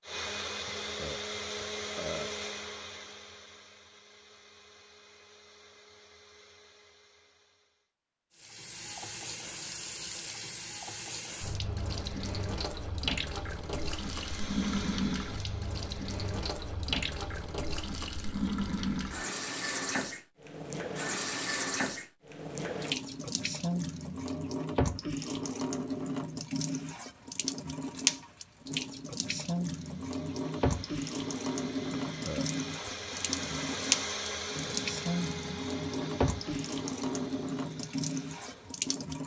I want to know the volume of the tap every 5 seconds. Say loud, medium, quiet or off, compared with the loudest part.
off, medium, loud, loud, loud, loud, loud, loud.